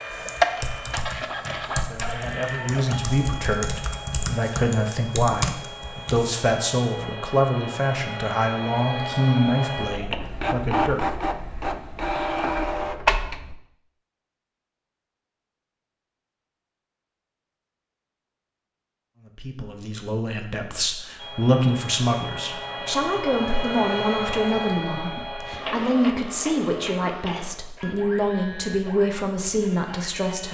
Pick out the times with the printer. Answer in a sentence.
The printer can be heard from 0.0 to 13.6 s and from 21.1 to 30.5 s.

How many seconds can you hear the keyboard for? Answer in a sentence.
The keyboard can be heard for 6 seconds in total.